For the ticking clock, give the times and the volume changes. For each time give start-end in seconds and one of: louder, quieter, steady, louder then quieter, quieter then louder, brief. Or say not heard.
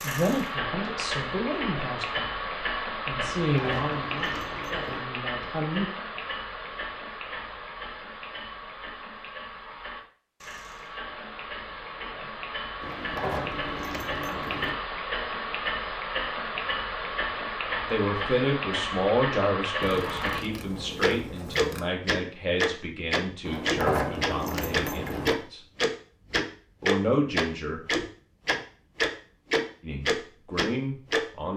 0.0-20.4 quieter then louder
21.0-31.2 steady.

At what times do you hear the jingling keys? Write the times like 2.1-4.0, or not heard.
3.4-5.0, 12.8-14.7, 23.4-25.4.